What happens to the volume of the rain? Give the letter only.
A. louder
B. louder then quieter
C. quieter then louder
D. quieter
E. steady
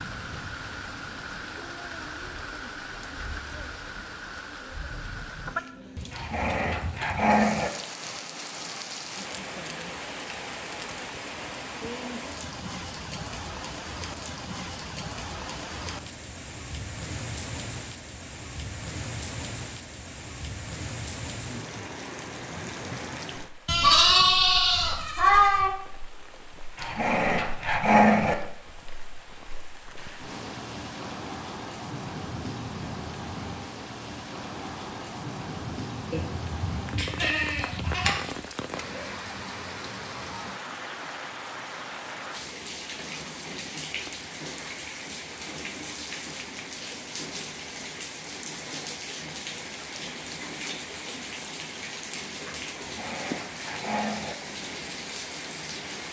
E.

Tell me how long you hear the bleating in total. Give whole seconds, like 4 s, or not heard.
4 s.